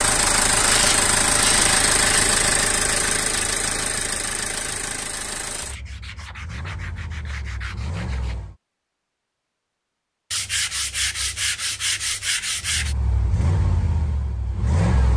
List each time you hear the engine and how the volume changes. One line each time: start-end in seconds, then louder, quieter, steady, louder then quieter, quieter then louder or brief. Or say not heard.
0.0-8.6 quieter
12.5-15.1 brief.